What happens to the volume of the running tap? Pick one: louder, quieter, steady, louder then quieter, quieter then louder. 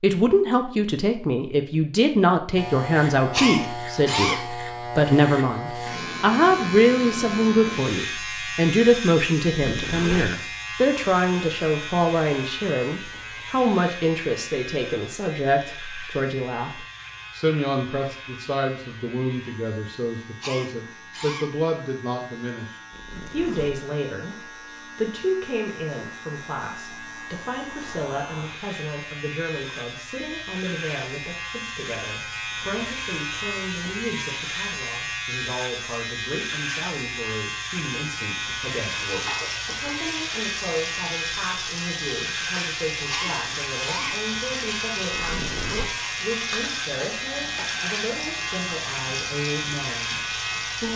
steady.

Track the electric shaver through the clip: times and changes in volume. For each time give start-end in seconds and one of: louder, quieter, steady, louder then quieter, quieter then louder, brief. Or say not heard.
2.5-50.9 quieter then louder.